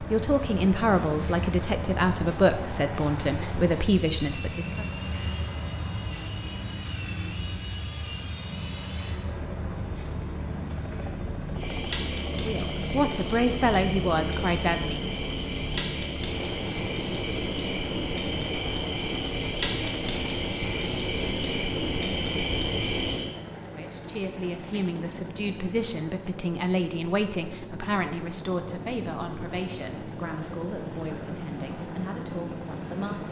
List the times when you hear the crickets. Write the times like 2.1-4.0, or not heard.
0.0-33.2.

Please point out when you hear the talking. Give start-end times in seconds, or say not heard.
0.0-4.8, 12.4-15.1, 23.6-33.2.